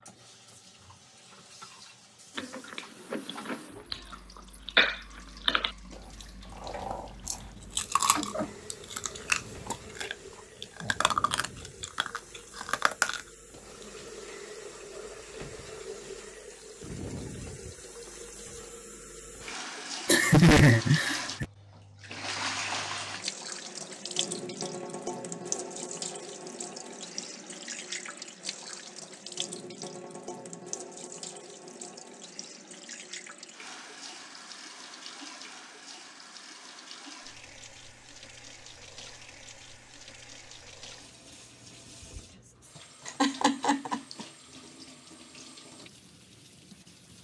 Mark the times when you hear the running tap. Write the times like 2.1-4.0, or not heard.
0.0-47.2.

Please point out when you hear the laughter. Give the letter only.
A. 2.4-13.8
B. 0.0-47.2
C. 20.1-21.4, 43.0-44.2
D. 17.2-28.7
C.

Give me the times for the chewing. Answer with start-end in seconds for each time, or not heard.
2.4-13.8.